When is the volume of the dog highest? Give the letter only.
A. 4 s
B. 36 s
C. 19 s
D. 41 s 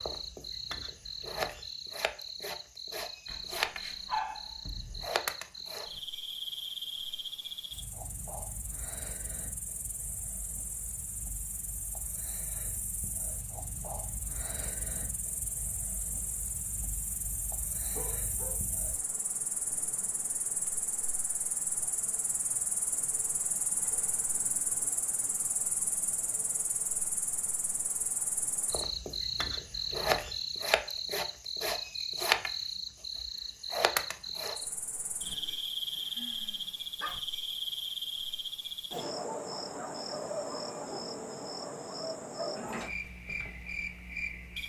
A.